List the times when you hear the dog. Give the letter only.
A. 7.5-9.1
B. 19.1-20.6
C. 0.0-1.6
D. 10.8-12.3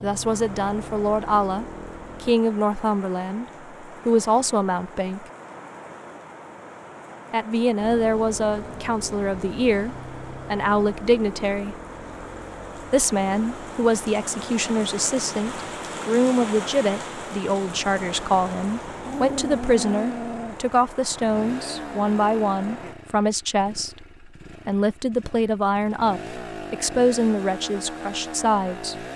B.